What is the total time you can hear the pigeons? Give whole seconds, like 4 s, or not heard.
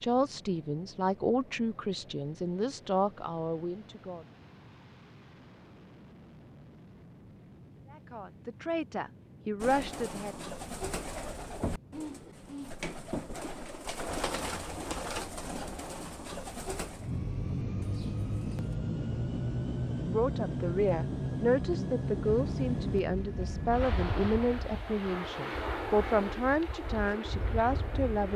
9 s.